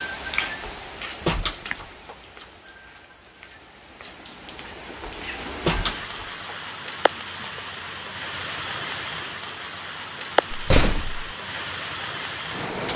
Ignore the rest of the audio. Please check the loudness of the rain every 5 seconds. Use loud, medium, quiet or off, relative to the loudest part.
medium, loud, loud.